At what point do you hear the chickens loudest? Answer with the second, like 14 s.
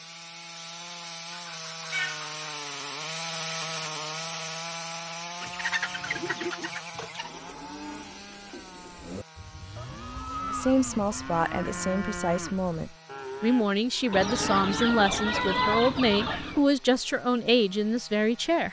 16 s.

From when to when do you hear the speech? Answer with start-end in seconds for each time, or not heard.
10.4-18.6.